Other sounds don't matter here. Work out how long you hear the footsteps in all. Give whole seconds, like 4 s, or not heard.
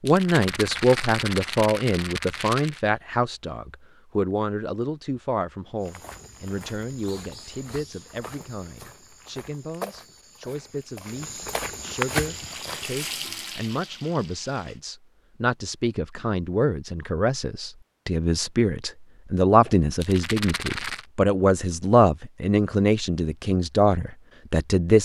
7 s.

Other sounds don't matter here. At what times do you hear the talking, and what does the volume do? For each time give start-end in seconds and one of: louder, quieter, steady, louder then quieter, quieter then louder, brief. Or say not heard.
0.0-25.0 quieter then louder.